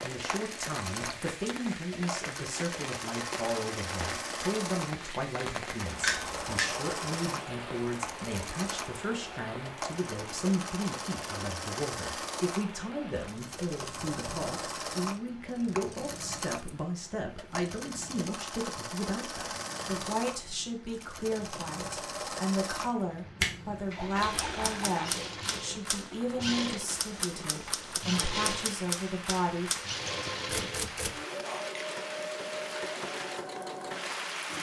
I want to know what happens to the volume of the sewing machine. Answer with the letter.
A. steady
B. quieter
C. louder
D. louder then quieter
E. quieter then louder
A.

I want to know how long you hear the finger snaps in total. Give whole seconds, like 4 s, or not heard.
2 s.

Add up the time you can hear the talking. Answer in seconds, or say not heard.
30 s.